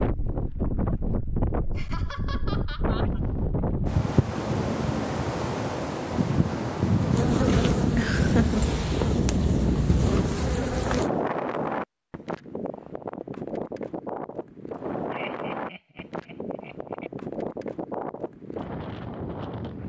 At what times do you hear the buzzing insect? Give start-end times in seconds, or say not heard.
7.1-11.1.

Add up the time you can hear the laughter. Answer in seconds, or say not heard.
4 s.